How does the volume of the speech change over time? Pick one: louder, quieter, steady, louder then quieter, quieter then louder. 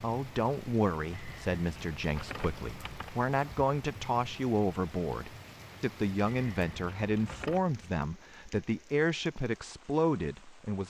steady.